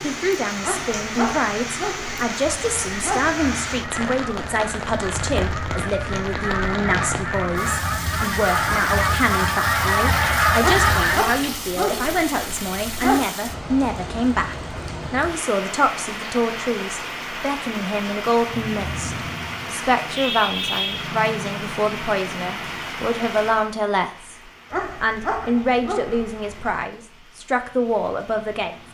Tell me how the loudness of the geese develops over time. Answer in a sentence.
The loudness of the geese goes up.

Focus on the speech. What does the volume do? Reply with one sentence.
The loudness of the speech stays about the same.